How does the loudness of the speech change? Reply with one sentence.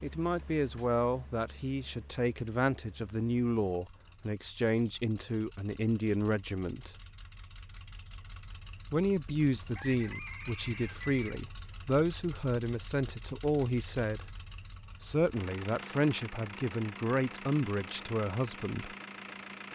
The volume of the speech stays about the same.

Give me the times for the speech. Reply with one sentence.
You can hear the speech from 0.0 to 6.9 s, from 8.9 to 14.2 s and from 15.0 to 18.9 s.